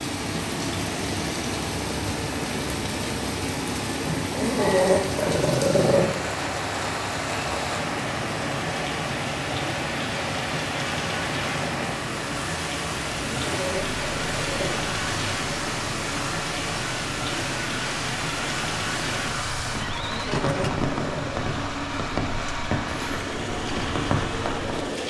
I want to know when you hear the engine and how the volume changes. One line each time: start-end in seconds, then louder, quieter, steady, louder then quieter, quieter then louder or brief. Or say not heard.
0.0-25.0 steady.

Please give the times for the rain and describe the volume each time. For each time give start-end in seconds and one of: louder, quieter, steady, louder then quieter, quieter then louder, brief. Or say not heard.
0.0-25.0 steady.